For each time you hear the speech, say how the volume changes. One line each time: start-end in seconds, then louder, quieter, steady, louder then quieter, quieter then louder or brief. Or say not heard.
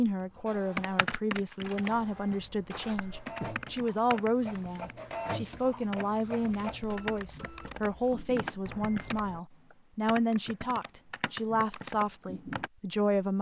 0.0-13.3 steady.